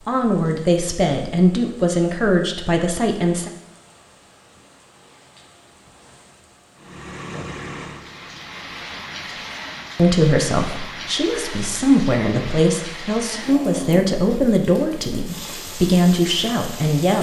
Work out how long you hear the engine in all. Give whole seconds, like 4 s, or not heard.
2 s.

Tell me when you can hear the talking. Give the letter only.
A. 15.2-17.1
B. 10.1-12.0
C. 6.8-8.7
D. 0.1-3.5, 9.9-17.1
D.